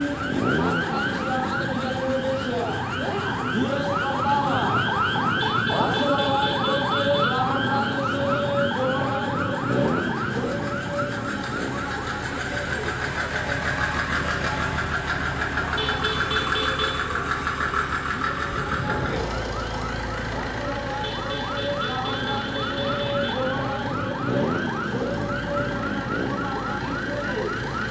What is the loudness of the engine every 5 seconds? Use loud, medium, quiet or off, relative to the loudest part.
quiet, quiet, loud, loud, medium, medium.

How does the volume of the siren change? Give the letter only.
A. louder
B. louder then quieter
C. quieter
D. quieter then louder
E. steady
D.